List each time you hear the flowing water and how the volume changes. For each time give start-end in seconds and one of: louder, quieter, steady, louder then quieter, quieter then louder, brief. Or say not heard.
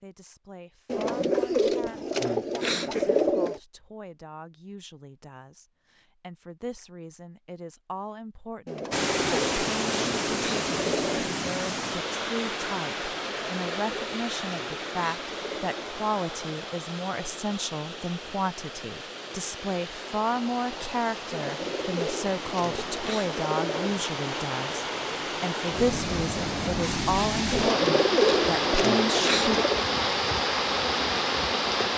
8.9-31.9 quieter then louder.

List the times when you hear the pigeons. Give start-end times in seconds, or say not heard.
0.8-3.6, 8.7-11.2, 13.2-16.0, 21.3-24.1, 27.5-29.9.